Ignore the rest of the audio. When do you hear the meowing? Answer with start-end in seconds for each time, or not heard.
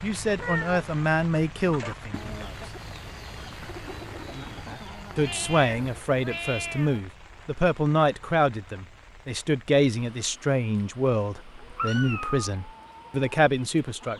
0.3-0.9, 5.2-7.0, 11.8-12.5.